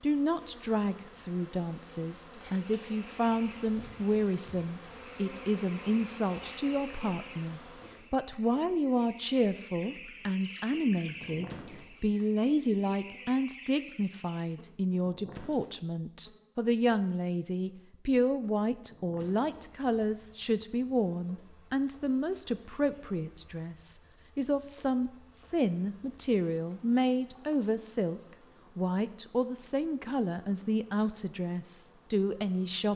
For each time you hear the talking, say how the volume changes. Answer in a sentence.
You can hear the talking from 0.0 to 32.9 s, at a steady volume.